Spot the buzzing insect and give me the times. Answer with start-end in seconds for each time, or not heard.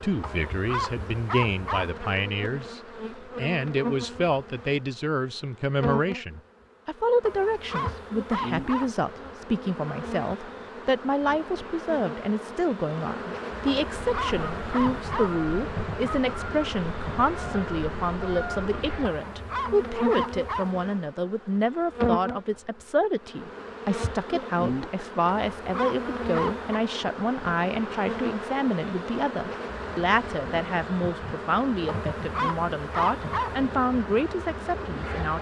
0.0-35.3.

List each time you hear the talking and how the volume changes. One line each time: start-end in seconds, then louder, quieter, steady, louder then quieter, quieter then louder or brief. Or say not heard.
0.0-35.3 steady.